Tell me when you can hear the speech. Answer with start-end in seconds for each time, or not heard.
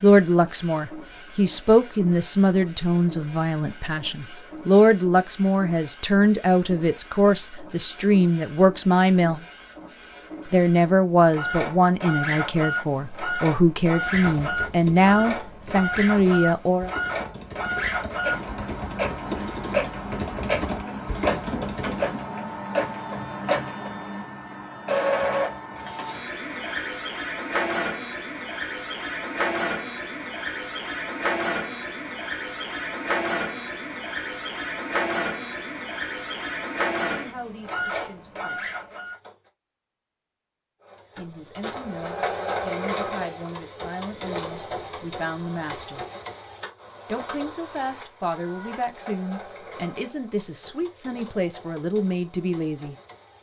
0.0-9.4, 10.5-16.9, 37.1-38.7, 41.1-46.0, 47.0-53.0.